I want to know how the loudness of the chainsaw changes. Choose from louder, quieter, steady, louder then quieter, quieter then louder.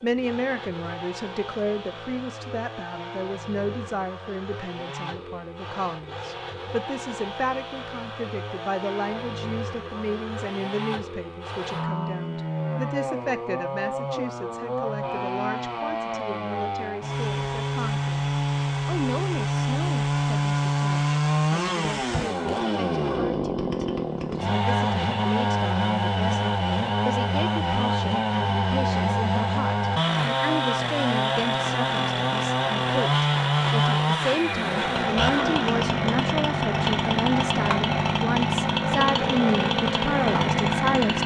louder.